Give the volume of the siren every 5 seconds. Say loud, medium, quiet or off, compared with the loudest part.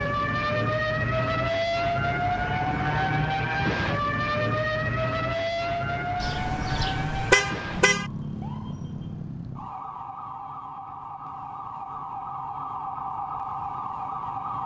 loud, medium, medium.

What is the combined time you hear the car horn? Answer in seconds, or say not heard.
2 s.